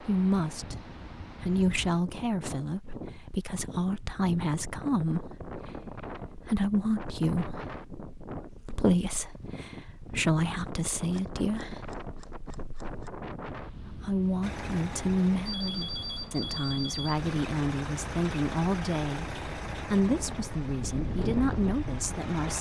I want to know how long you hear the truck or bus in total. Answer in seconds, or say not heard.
8 s.